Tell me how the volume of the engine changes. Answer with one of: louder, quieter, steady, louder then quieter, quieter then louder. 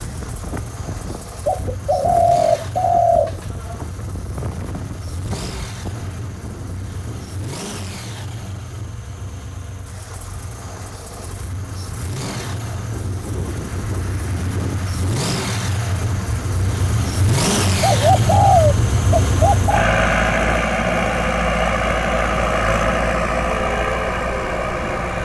louder.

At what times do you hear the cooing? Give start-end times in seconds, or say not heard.
1.4-3.8, 17.8-19.9.